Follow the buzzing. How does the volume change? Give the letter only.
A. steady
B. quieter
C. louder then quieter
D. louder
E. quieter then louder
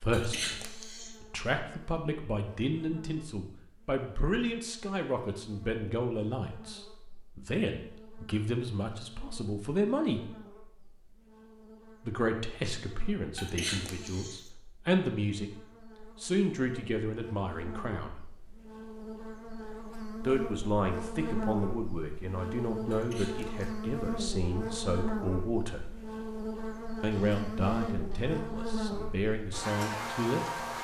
D.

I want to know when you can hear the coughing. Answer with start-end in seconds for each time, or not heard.
0.1-1.1, 13.3-14.4, 22.9-23.7.